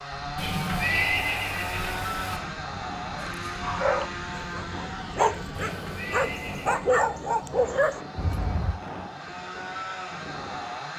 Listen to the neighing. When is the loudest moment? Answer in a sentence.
The volume of the neighing peaks at 1 second.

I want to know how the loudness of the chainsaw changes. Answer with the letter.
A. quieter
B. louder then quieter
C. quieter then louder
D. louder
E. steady
C.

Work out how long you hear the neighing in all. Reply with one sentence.
You can hear the neighing for 3 seconds altogether.